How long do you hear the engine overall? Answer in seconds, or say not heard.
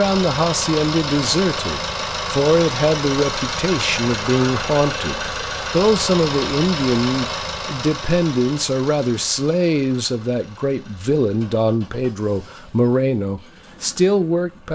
15 s.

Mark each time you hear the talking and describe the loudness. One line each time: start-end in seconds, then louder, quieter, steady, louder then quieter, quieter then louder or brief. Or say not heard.
0.0-14.7 steady.